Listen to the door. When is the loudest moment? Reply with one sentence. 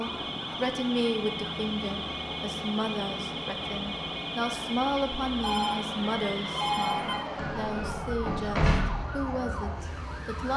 The volume of the door peaks at 9 seconds.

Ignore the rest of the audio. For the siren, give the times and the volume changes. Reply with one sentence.
You can hear the siren from 0.0 to 10.5 s, at a steady volume.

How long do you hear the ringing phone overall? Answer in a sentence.
The ringing phone can be heard for 2 seconds in total.